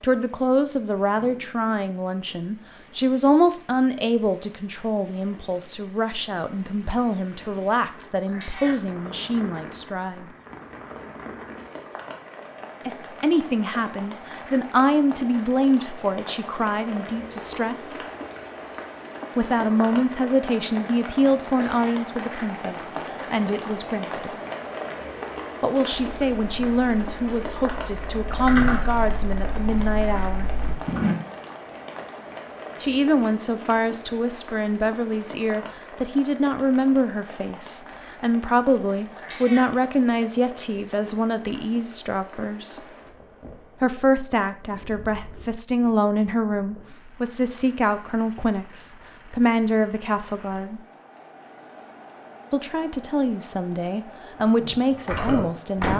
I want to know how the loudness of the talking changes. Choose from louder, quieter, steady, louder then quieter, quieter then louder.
steady.